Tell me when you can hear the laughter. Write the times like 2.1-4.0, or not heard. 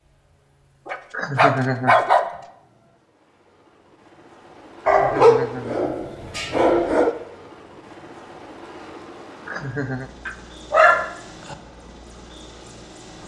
1.1-1.9, 4.8-6.0, 9.4-10.1.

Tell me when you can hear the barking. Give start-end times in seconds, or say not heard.
0.8-2.2, 4.8-7.2, 10.2-11.6.